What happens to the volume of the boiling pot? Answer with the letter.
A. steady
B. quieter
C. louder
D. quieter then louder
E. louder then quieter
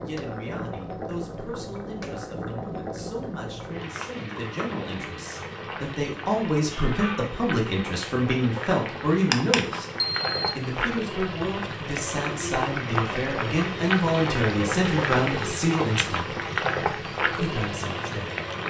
C.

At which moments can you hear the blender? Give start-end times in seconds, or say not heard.
not heard.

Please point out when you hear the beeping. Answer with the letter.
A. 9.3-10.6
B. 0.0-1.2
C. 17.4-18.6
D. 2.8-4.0
A.